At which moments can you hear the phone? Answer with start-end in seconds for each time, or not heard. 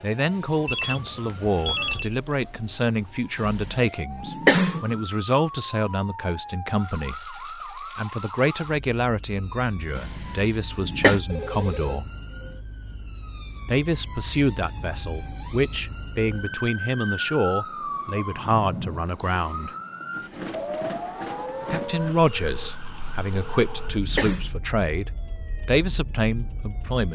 0.7-2.1, 11.2-12.0, 22.1-24.1.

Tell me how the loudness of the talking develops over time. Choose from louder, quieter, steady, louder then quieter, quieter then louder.
steady.